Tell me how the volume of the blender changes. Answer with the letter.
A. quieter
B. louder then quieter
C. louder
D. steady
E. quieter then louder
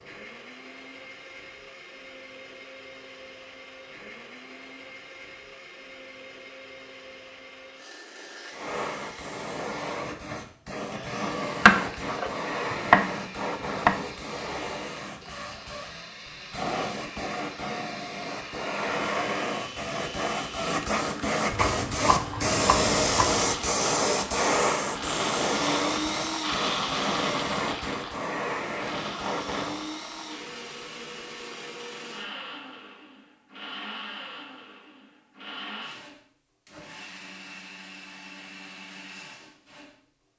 B.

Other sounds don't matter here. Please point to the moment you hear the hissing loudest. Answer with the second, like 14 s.
23 s.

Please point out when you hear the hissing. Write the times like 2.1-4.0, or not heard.
8.5-29.9.